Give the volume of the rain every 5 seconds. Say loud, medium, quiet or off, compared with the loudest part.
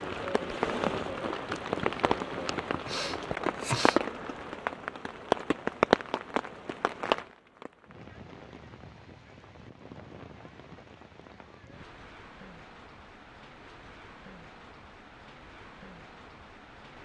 loud, loud, quiet, quiet.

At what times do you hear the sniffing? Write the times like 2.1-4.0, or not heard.
2.4-4.0.